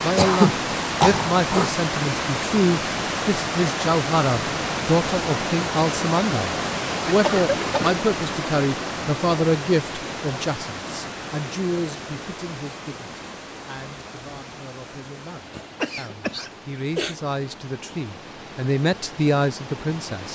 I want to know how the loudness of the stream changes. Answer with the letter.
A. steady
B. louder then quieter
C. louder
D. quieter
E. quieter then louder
D.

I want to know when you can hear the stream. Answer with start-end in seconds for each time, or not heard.
0.0-20.3.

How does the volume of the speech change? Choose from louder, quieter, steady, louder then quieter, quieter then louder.
quieter then louder.